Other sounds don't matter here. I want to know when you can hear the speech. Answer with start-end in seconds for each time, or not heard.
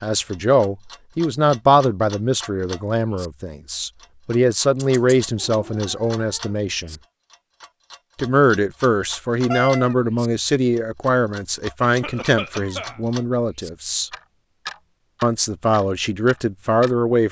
0.0-7.0, 8.2-14.1, 15.2-17.2.